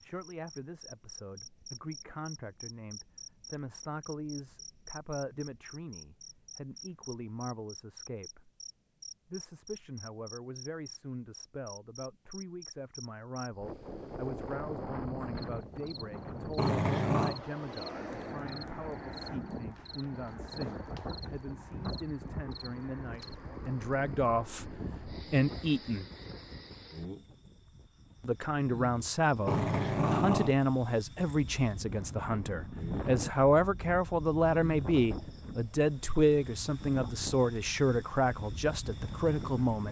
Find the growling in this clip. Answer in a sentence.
The growling can be heard from 16.6 to 17.4 s and from 29.4 to 30.6 s.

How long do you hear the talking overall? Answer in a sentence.
You can hear the talking for 36 seconds altogether.